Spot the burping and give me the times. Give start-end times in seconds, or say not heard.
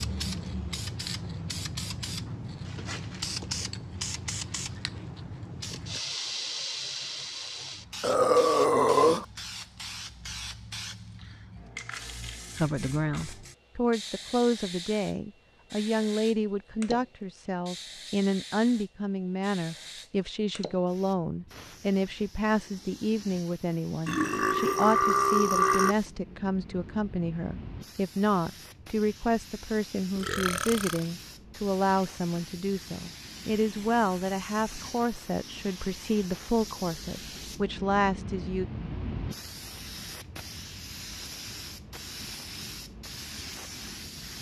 8.0-9.2, 24.1-25.9, 30.1-31.0.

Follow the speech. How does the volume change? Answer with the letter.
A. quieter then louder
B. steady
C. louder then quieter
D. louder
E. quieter
B.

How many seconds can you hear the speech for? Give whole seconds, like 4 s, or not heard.
26 s.